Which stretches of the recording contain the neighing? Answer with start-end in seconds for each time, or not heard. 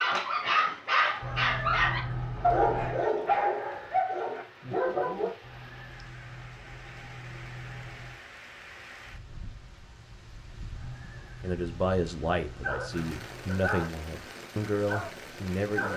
1.2-3.0, 5.4-8.2, 10.7-13.5.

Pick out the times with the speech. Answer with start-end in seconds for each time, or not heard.
11.4-15.9.